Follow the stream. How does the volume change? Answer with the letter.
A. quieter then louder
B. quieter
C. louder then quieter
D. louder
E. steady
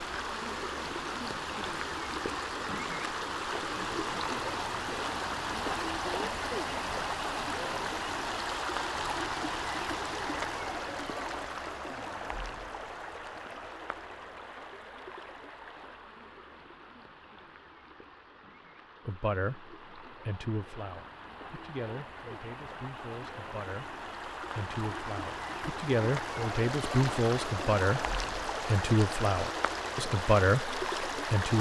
A.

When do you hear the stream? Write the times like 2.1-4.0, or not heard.
0.0-31.5.